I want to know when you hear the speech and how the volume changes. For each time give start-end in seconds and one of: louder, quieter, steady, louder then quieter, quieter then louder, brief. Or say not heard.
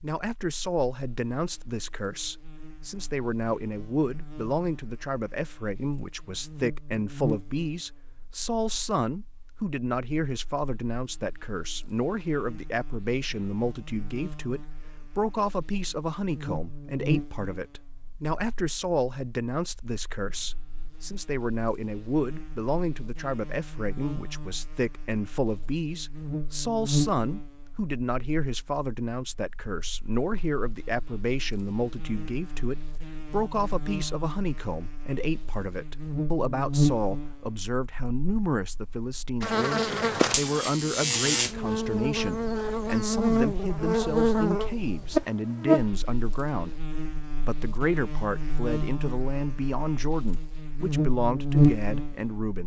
0.0-52.6 steady.